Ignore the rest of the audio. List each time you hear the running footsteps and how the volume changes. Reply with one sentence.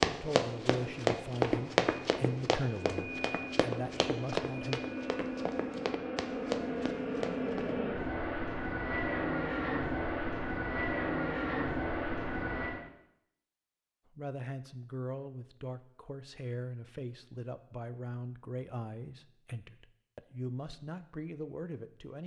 The running footsteps can be heard from 0.0 to 7.8 s, getting quieter.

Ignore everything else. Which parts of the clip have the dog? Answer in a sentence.
The dog can't be heard in this clip.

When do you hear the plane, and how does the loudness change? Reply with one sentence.
You can hear the plane from 0.1 to 12.8 s, getting louder.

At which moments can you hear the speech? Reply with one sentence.
You can hear the speech from 0.1 to 4.8 s and from 14.1 to 22.2 s.